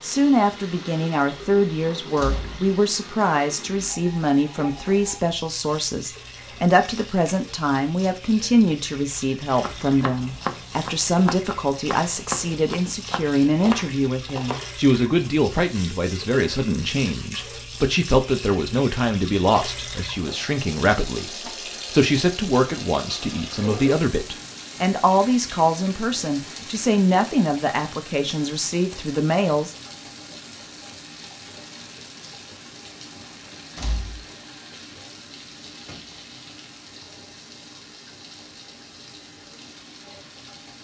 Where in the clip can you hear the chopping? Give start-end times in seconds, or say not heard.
9.6-14.7.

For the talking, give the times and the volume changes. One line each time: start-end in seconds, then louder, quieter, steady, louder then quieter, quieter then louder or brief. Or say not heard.
0.0-29.8 steady.